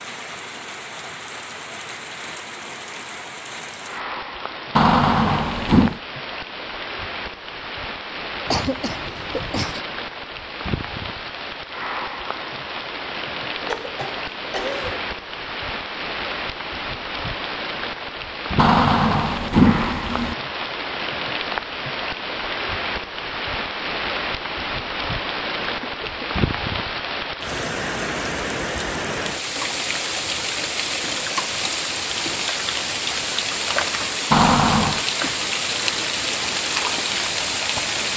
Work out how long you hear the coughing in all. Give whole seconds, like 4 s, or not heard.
4 s.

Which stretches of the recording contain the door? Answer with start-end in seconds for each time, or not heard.
4.8-6.0, 18.6-20.4, 34.3-35.0.